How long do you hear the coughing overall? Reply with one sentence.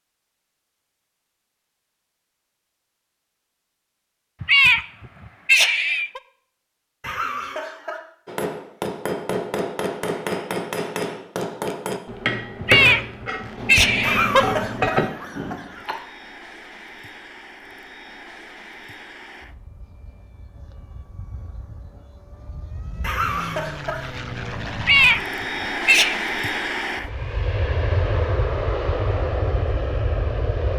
You can hear the coughing for 4 seconds altogether.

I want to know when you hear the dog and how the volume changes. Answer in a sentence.
You can't hear the dog here.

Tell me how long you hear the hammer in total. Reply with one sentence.
You can hear the hammer for 7 seconds altogether.